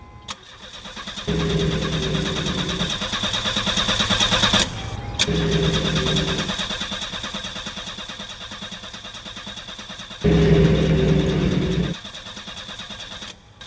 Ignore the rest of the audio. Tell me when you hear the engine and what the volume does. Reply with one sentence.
The engine can be heard from 0.0 to 13.6 s, getting louder then quieter.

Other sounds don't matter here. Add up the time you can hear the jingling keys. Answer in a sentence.
You can hear the jingling keys for 5 seconds altogether.